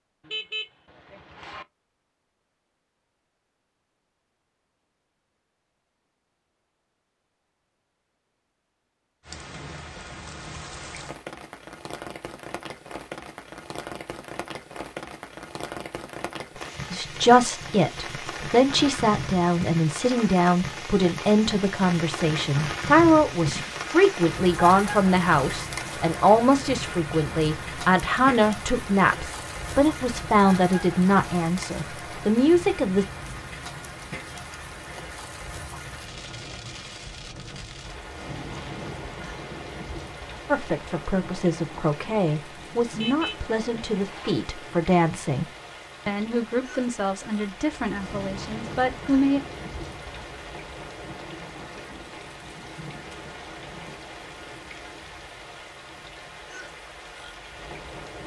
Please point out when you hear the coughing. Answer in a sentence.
The coughing can't be heard in this clip.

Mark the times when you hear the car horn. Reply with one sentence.
You can hear the car horn from 0.2 to 1.6 s and from 43.0 to 44.4 s.